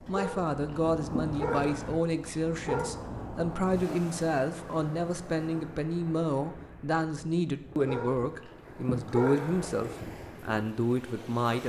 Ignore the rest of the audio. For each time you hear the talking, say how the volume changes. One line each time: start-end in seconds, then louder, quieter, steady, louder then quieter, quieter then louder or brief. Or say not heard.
0.1-11.6 steady.